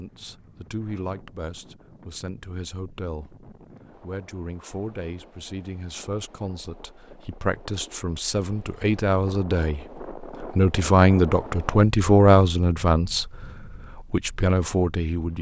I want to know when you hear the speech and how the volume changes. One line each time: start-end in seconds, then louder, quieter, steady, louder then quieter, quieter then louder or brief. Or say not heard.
0.0-15.3 louder.